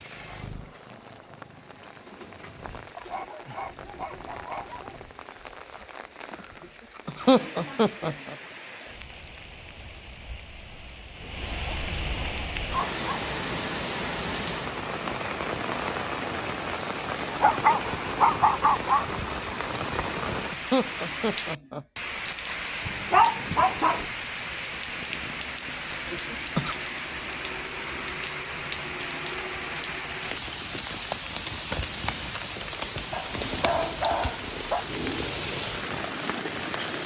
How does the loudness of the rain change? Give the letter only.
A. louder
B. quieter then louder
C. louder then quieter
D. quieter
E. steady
A.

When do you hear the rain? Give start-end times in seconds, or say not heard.
0.0-37.0.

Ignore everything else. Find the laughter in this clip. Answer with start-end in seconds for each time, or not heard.
7.0-8.3, 20.5-21.9, 26.1-26.8.